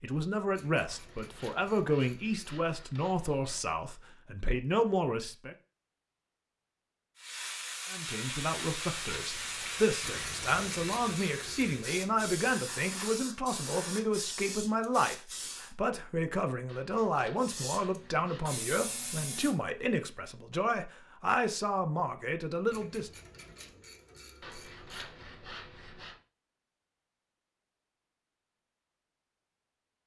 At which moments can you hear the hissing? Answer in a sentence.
You can hear the hissing from 7.2 to 15.8 s and from 17.4 to 19.9 s.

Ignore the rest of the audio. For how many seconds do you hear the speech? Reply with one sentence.
The speech can be heard for 21 seconds in total.